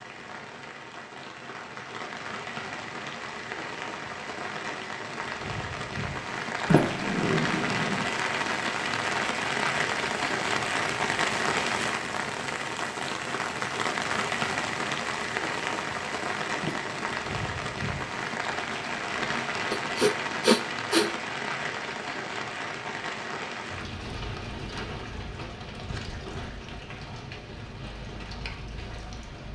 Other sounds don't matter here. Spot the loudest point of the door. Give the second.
7 s.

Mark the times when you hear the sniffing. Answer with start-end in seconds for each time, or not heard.
19.7-21.1.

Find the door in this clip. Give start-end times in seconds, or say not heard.
6.7-8.1, 16.6-17.2.